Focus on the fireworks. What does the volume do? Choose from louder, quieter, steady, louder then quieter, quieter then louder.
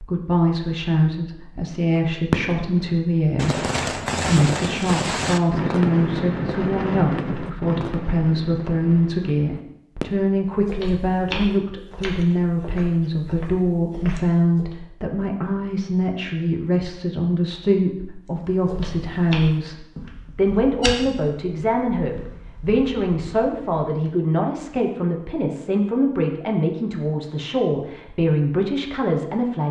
quieter.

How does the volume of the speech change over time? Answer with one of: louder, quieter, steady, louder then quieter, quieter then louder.
steady.